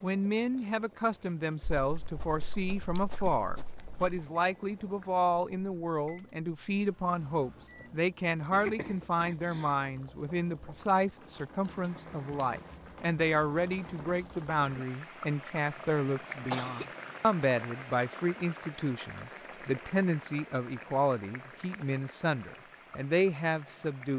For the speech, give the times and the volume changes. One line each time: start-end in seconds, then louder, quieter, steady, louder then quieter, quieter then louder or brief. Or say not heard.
0.0-24.1 steady.